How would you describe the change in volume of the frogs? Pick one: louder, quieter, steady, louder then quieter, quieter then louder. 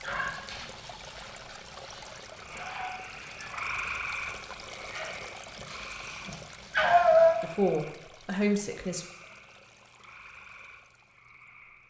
quieter.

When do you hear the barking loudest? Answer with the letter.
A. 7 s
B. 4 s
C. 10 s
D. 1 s
A.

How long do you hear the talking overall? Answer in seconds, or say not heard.
2 s.